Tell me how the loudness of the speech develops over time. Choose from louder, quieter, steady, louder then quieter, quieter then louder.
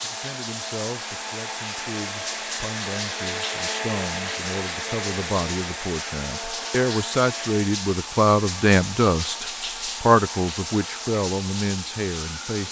louder.